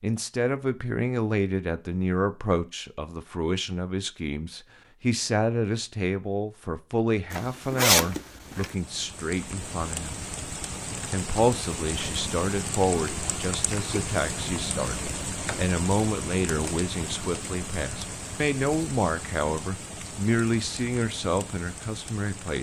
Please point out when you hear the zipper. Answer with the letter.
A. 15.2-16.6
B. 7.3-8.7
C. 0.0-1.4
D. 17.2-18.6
B.